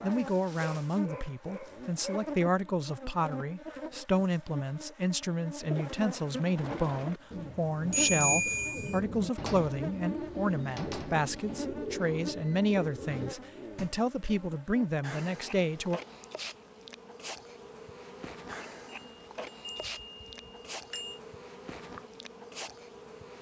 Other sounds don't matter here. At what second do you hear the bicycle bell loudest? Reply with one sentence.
The loudest moment of the bicycle bell is at 8 seconds.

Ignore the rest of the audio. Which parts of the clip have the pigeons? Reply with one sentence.
The pigeons can be heard from 5.6 to 13.9 s.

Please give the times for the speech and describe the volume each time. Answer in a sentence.
The speech can be heard from 0.0 to 16.0 s, at a steady volume.